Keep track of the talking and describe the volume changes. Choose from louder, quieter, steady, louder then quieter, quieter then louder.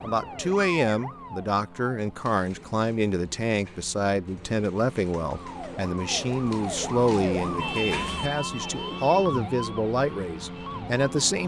steady.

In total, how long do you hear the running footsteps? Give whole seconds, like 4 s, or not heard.
not heard.